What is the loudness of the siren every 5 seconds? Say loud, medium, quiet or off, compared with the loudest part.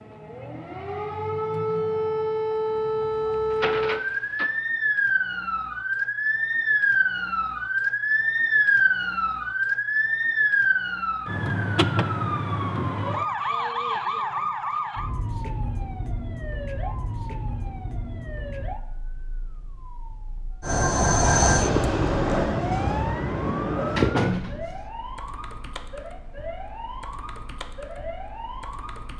loud, loud, loud, quiet, quiet, quiet.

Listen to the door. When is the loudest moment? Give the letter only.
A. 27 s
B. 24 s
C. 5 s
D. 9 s
B.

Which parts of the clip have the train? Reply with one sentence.
You can hear the train from 20.6 to 24.2 s.